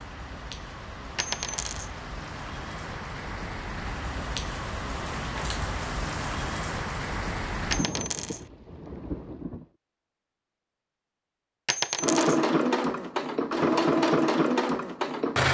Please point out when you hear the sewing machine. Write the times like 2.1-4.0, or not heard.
12.0-15.4.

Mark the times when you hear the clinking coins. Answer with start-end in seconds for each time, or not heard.
1.1-1.9, 7.7-8.4, 11.7-12.4.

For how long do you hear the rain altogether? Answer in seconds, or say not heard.
10 s.